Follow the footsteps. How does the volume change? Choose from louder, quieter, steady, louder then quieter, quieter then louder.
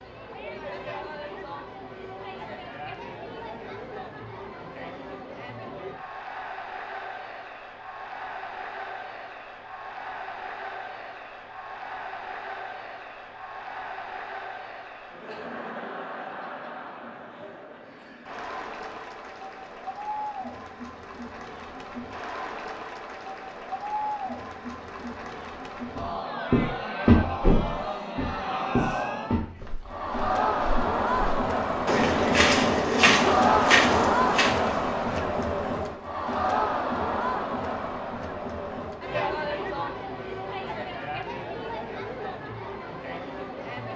quieter then louder.